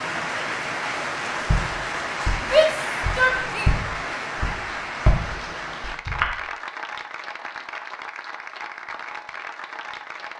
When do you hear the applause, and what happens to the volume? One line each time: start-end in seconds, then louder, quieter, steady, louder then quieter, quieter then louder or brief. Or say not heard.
0.0-10.3 quieter.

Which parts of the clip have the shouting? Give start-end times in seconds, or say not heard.
2.4-3.8.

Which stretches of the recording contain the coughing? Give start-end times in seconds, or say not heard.
not heard.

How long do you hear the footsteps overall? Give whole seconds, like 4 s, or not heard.
5 s.